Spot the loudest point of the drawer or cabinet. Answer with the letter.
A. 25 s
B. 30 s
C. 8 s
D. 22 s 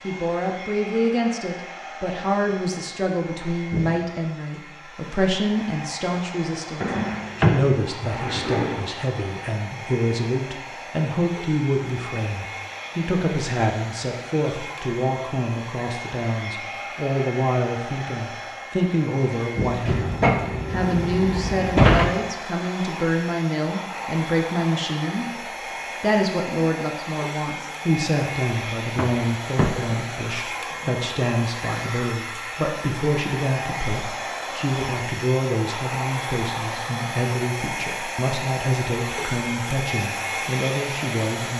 D.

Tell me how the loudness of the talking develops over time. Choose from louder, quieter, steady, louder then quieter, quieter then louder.
steady.